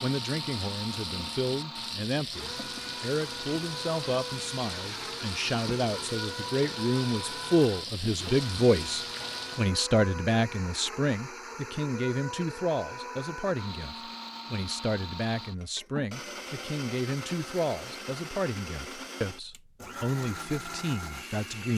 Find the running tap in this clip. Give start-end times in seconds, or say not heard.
0.0-9.7.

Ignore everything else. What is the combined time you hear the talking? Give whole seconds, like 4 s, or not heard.
22 s.